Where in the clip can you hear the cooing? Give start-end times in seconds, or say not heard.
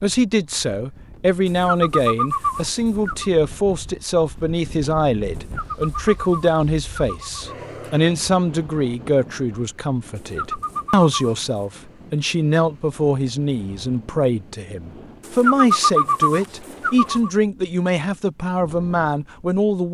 1.4-3.3, 5.3-8.0, 10.2-11.5, 15.2-17.3.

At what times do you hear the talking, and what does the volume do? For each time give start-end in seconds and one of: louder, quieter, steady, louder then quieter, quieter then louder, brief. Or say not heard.
0.0-19.8 steady.